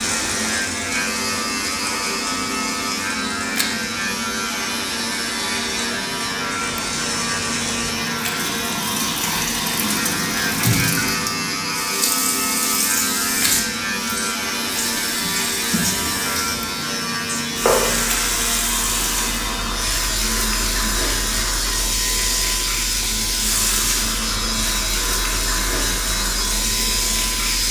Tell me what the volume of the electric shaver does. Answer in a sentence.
The volume of the electric shaver stays about the same.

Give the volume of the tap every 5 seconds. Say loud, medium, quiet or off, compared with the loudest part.
medium, loud, loud, loud, loud, loud.